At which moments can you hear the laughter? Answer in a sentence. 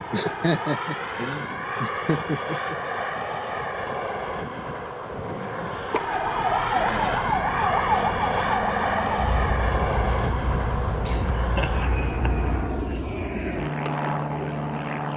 The laughter can be heard from 0.1 to 2.8 s, from 5.9 to 7.2 s and from 11.1 to 13.0 s.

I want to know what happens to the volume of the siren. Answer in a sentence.
The loudness of the siren goes down.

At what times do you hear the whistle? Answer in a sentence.
The whistle can't be heard in this clip.